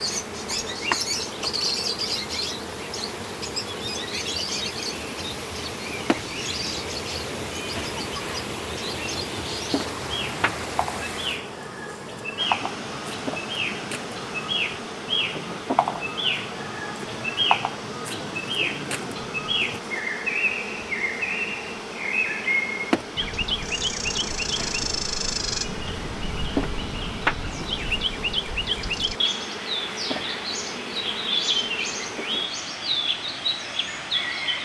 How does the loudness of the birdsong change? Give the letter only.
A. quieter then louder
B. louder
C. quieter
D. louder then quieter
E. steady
E.